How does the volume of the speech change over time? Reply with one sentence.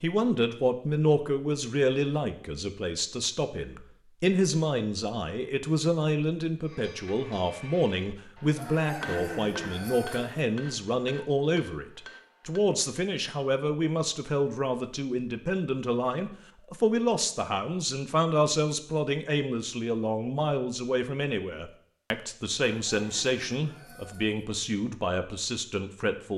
The volume of the speech stays about the same.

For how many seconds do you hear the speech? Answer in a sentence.
You can hear the speech for 26 seconds altogether.